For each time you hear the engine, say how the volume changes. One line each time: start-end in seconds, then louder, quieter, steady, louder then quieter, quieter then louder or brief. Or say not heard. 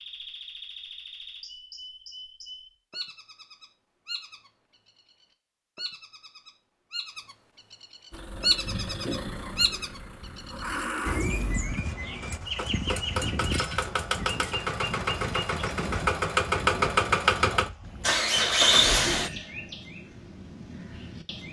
8.1-19.4 louder.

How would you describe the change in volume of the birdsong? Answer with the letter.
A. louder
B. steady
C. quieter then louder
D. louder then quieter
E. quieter
D.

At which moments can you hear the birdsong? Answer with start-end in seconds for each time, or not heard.
0.0-21.4.